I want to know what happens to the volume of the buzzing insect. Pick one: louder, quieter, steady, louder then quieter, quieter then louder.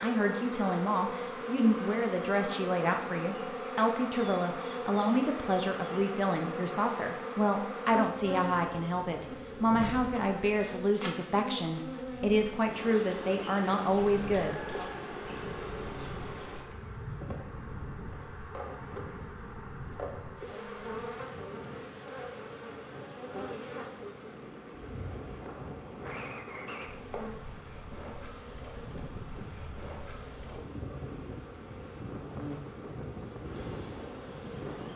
quieter.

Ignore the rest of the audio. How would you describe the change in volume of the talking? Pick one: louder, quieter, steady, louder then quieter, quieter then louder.
steady.